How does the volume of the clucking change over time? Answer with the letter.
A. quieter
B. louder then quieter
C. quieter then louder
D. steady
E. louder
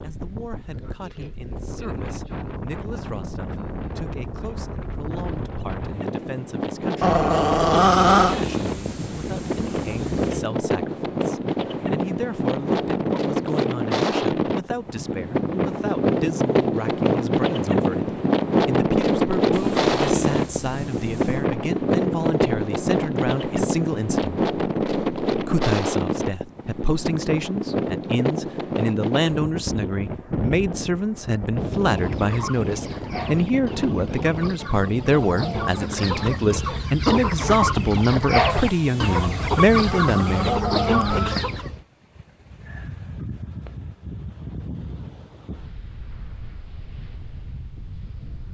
E.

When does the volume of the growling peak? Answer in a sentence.
The loudest moment of the growling is at 8 seconds.